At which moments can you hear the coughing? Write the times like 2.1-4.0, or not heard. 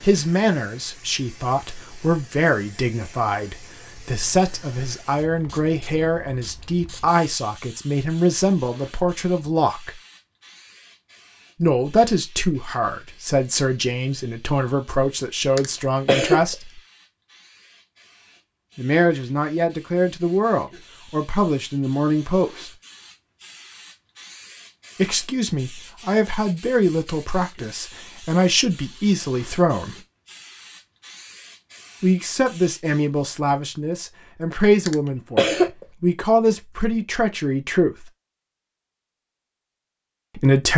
15.6-16.6, 34.9-35.9.